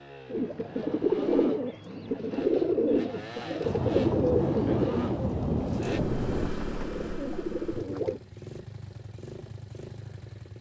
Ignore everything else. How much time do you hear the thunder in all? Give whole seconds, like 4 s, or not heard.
3 s.